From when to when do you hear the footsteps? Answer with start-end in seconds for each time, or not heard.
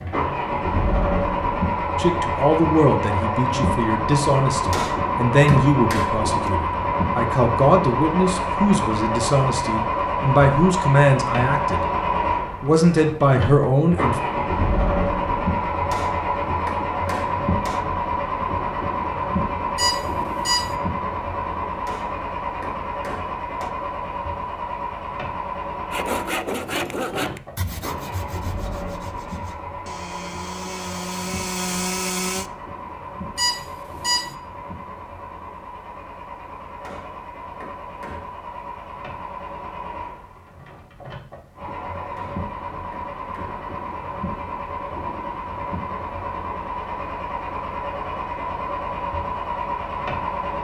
not heard.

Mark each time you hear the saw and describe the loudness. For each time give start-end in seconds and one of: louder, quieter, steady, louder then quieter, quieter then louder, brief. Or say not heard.
25.9-32.5 quieter then louder.